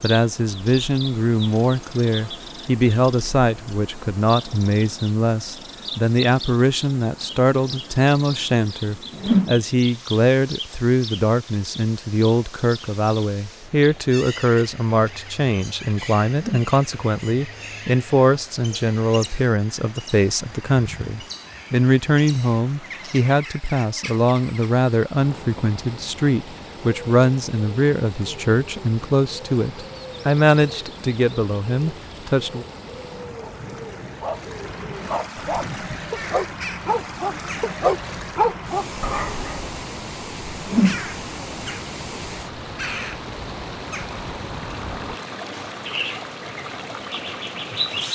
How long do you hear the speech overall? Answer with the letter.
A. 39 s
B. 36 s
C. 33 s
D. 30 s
C.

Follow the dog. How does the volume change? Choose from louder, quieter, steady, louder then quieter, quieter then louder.
louder.